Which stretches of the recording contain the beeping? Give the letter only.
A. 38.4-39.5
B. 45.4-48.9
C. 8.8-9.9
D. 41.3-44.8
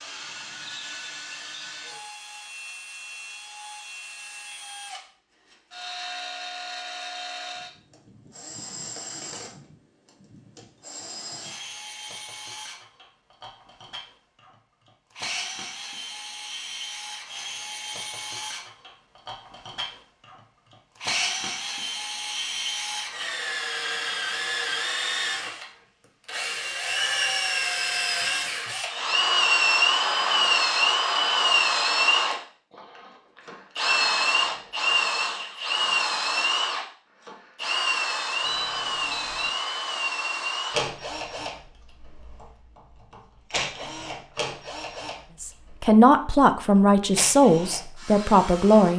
A.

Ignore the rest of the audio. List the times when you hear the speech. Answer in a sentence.
You can hear the speech from 45.4 to 48.9 s.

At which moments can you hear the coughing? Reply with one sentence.
You can't hear the coughing here.